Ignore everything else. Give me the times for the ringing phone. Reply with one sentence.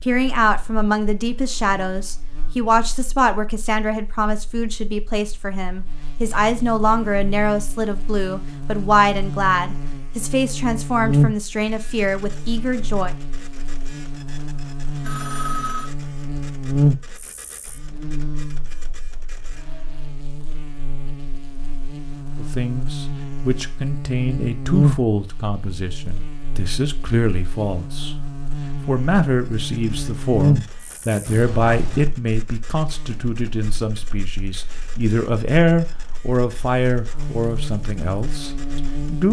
The ringing phone can be heard from 15.0 to 15.9 s and from 31.2 to 32.0 s.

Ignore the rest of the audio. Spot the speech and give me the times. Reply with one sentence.
You can hear the speech from 0.0 to 13.1 s, from 22.4 to 28.1 s and from 28.9 to 39.2 s.